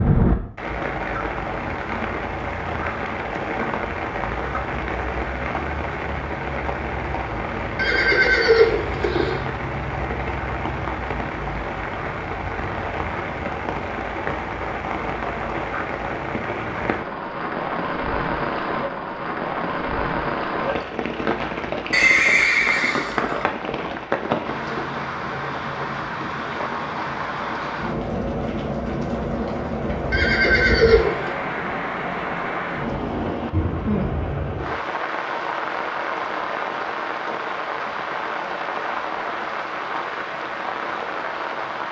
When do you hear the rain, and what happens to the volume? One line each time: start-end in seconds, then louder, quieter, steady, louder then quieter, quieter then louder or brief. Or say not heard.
0.0-41.8 steady.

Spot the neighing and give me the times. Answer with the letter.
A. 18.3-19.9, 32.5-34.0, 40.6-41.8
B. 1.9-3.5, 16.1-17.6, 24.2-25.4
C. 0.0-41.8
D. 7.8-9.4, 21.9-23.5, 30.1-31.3
D.